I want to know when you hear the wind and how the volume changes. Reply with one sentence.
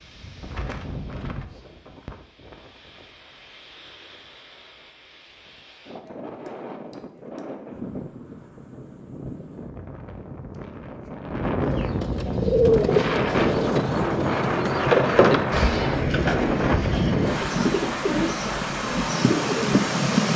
You can hear the wind from 0.0 to 20.3 s, getting louder.